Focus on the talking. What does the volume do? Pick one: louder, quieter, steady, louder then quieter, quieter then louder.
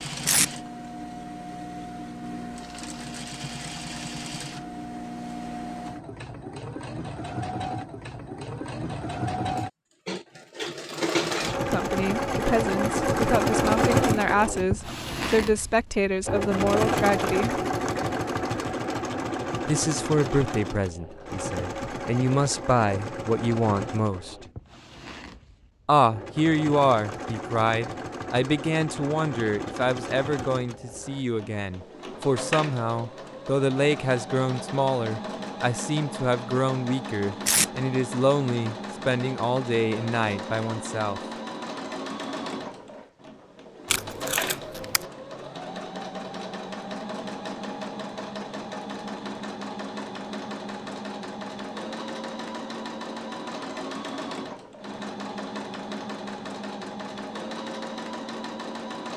steady.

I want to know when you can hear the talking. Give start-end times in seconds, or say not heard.
11.7-17.6, 19.6-24.4, 25.9-41.2.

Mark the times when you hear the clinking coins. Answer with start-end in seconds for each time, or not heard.
not heard.